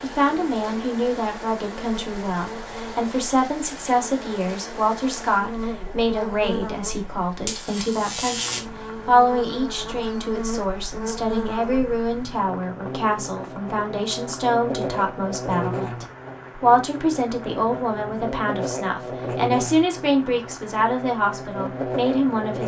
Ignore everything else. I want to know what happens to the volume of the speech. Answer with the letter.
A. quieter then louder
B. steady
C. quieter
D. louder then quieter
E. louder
B.